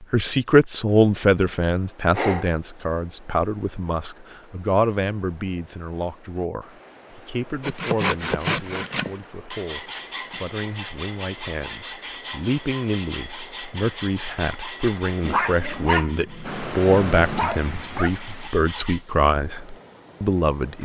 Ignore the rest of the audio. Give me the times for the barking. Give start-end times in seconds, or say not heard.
2.1-2.5, 15.2-18.1.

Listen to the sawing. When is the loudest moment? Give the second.
8 s.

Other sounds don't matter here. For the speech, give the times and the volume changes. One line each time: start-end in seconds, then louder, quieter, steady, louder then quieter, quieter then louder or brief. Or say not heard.
0.0-20.8 quieter then louder.